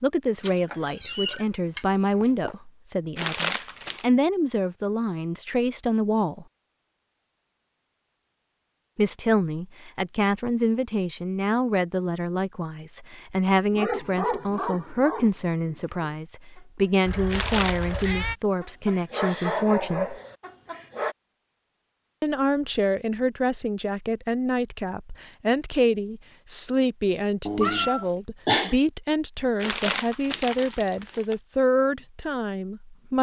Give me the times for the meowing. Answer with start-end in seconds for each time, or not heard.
0.4-2.5, 17.1-18.4, 27.4-28.8.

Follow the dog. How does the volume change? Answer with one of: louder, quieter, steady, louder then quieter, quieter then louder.
quieter then louder.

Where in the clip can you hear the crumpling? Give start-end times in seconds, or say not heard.
3.1-4.0, 17.3-18.1, 29.6-31.4.